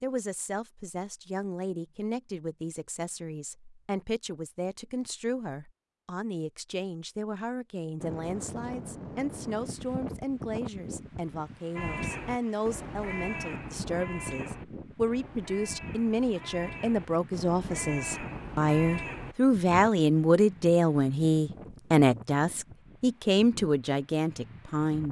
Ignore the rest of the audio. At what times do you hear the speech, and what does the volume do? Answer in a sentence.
You can hear the speech from 0.0 to 25.0 s, getting louder.